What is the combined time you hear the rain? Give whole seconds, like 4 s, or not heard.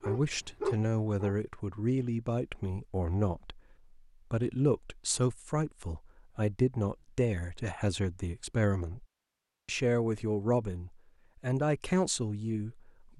not heard.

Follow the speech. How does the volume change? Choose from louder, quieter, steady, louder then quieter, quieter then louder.
steady.